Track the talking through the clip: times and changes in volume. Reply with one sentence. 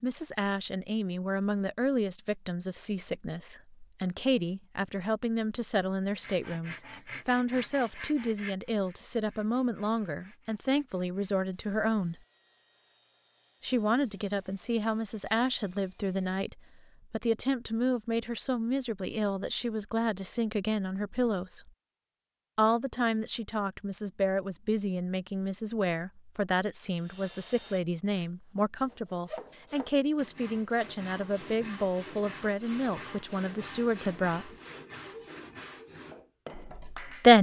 You can hear the talking from 0.0 to 12.2 s, at a steady volume; from 13.6 to 21.7 s, at a steady volume; from 22.6 to 34.5 s, at a steady volume; and briefly from 36.5 to 37.3 s.